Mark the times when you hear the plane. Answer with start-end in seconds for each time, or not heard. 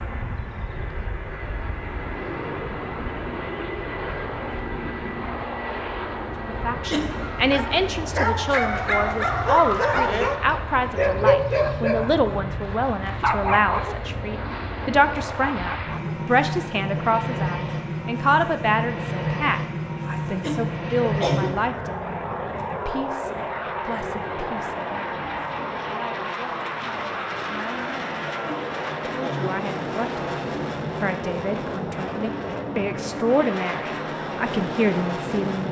0.0-35.6.